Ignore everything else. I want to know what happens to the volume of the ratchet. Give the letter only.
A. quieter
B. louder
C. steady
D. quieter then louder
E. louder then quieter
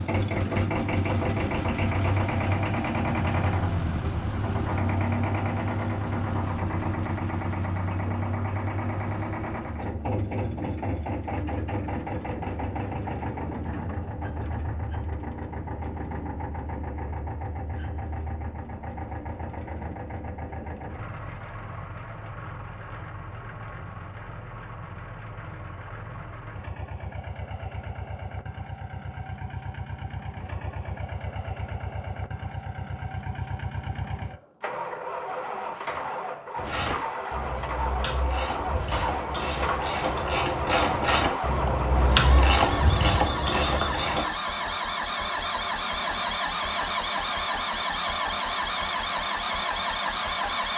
B.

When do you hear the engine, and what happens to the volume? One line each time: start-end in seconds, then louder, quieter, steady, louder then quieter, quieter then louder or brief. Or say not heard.
0.0-50.7 quieter then louder.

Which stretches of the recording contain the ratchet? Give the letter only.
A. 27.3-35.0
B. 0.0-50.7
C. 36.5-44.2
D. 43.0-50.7
C.